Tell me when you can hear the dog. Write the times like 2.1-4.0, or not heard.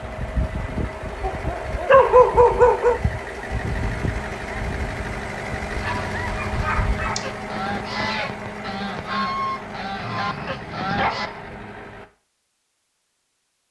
1.2-3.0, 5.8-7.2, 9.9-11.5.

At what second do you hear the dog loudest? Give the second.
2 s.